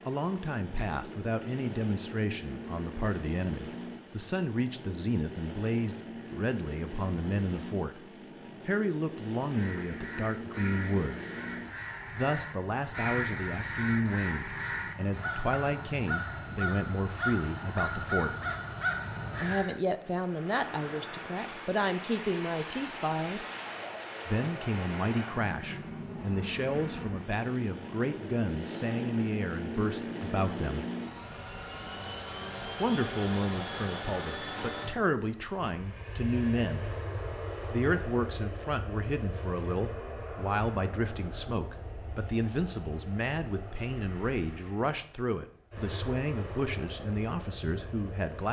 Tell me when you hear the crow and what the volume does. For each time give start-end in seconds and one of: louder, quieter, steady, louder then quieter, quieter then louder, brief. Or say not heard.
9.4-19.8 louder.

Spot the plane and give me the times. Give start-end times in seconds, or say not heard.
0.0-48.4.